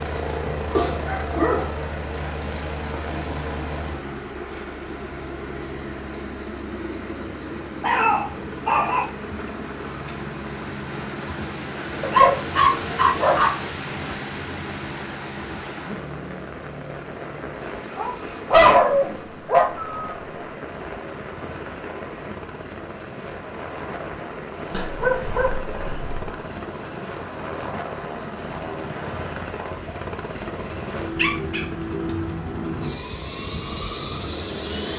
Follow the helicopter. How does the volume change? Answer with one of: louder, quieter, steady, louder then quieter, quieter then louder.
quieter then louder.